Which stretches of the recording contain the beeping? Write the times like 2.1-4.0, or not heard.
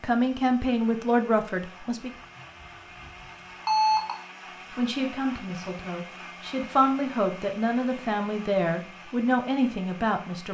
2.6-4.2.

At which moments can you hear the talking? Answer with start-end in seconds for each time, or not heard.
0.0-2.1, 4.7-10.4.